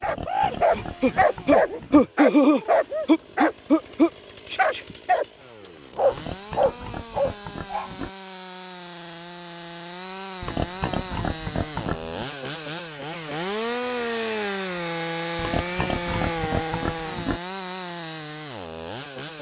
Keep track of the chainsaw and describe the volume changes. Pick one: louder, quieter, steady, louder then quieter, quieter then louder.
louder.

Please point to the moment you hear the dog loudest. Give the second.
2 s.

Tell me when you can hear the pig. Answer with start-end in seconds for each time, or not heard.
0.0-2.0, 6.1-8.1, 10.4-12.2, 15.3-17.4.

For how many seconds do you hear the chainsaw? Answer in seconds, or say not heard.
19 s.